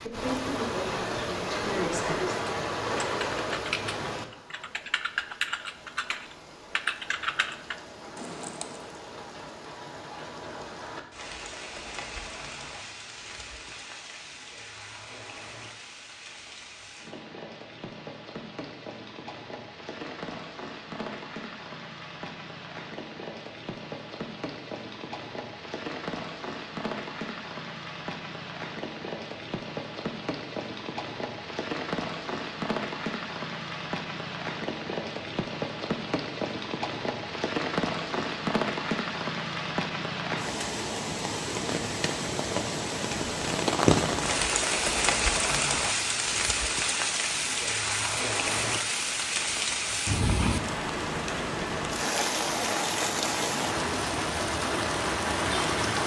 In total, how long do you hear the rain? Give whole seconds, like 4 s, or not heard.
56 s.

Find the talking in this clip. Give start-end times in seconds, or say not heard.
0.0-2.4.